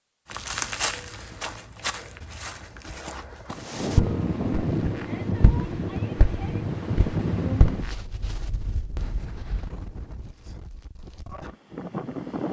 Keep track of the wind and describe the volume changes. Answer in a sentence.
The loudness of the wind goes down.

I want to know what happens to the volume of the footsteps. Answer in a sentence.
The volume of the footsteps goes down, then up.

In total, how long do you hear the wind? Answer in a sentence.
The wind can be heard for 9 seconds in total.